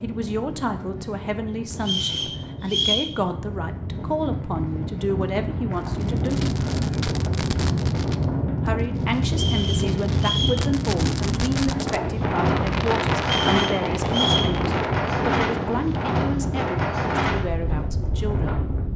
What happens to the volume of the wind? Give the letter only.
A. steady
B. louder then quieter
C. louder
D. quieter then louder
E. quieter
C.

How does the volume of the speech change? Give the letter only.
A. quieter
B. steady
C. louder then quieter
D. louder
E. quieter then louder
B.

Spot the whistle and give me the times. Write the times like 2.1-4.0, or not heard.
1.8-3.1, 9.3-10.6, 13.2-14.5.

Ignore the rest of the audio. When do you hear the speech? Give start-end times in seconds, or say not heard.
0.0-6.5, 8.7-18.6.